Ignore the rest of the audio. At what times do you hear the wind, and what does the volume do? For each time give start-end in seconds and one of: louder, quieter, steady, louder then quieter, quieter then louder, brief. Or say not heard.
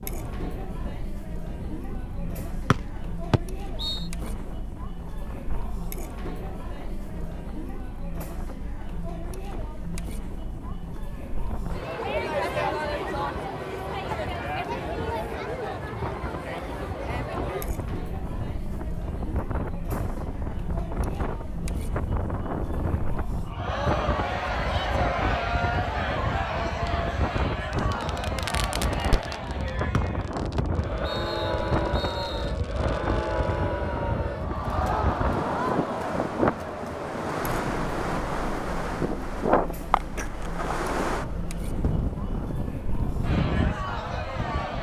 0.1-44.7 louder.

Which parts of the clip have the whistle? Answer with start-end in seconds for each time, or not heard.
2.7-4.0, 29.9-32.5.